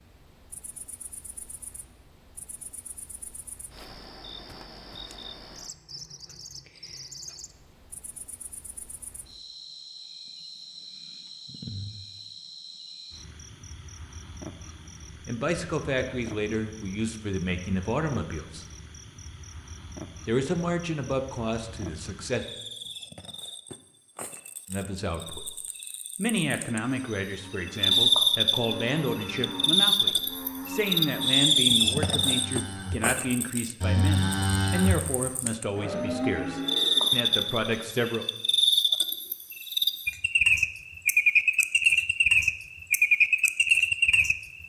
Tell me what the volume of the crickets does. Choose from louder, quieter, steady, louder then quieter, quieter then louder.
louder.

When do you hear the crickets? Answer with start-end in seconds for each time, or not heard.
0.0-44.6.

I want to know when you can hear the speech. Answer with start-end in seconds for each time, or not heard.
15.2-18.6, 20.2-22.4, 24.6-25.5, 26.1-38.2.